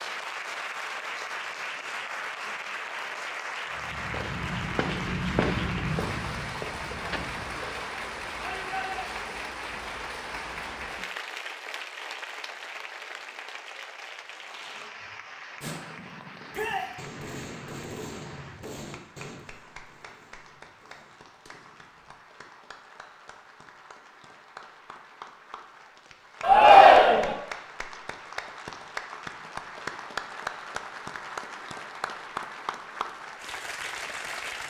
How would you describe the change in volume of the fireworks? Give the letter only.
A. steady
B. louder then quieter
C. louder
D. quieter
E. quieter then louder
B.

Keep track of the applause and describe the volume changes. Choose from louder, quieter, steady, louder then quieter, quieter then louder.
quieter then louder.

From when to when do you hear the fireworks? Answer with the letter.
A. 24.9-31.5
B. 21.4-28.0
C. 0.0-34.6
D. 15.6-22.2
D.